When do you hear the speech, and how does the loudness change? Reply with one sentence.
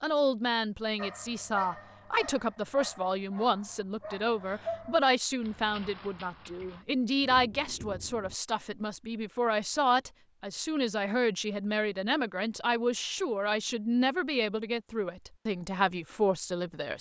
You can hear the speech from 0.0 to 16.9 s, at a steady volume.